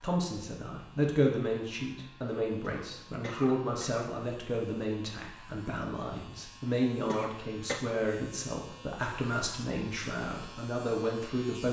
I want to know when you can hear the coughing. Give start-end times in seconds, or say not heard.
2.6-4.1, 7.1-7.8.